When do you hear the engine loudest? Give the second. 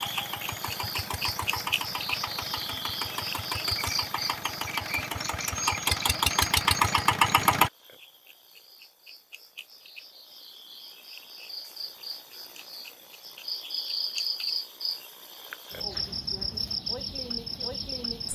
7 s.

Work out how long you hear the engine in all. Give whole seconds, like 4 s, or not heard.
8 s.